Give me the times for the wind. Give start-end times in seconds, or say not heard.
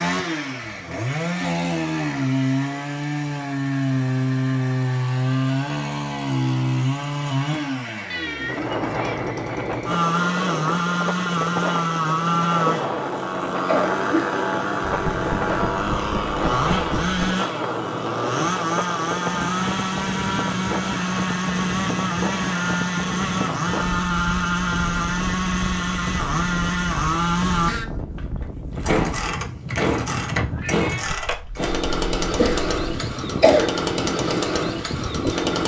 8.4-35.6.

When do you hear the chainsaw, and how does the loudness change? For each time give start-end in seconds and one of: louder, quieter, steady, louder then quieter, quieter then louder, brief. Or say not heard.
0.0-35.6 steady.